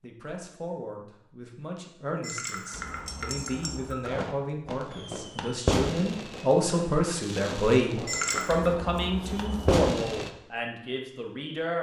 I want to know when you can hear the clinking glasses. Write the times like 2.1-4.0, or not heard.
2.2-4.1, 8.1-8.7.